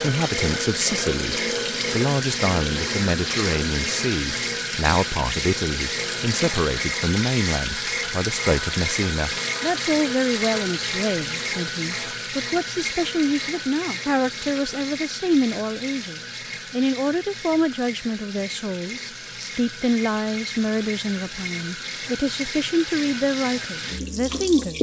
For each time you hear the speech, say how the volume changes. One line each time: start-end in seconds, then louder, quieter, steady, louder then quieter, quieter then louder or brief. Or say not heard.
0.0-24.7 steady.